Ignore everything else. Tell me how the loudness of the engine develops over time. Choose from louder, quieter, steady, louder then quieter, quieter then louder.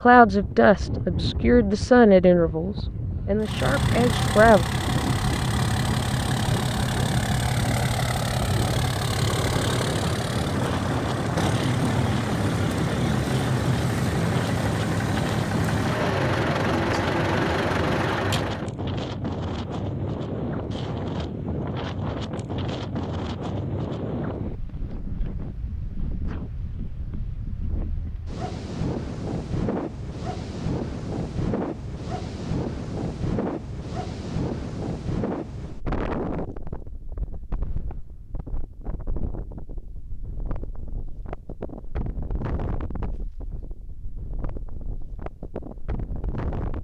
steady.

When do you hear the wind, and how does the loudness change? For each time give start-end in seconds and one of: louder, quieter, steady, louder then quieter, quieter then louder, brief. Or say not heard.
0.0-46.8 quieter.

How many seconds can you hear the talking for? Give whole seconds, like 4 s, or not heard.
5 s.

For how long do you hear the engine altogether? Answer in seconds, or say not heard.
15 s.